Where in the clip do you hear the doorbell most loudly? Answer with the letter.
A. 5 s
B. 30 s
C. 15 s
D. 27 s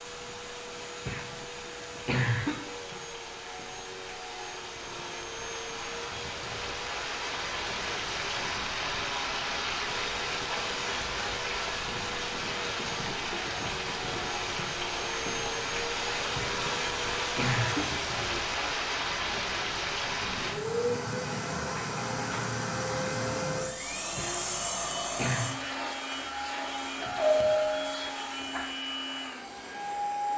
D.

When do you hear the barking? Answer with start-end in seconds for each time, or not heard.
not heard.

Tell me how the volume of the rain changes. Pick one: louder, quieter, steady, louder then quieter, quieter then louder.
louder.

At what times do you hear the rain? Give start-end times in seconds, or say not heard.
0.0-20.6.